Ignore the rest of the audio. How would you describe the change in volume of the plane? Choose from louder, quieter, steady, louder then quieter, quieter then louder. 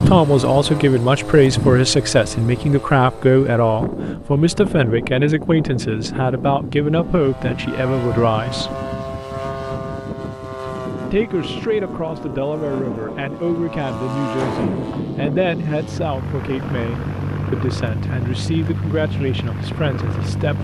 steady.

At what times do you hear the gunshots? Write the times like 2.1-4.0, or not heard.
14.3-15.1.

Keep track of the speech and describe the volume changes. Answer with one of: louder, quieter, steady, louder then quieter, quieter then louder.
quieter.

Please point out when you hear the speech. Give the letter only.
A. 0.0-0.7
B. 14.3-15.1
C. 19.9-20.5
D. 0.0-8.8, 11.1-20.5
D.